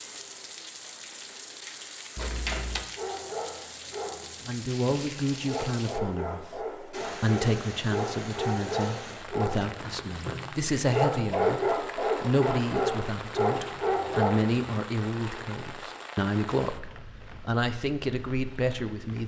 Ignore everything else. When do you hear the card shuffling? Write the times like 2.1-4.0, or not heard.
2.1-2.9.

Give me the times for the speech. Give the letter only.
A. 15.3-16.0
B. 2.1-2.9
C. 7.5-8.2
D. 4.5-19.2
D.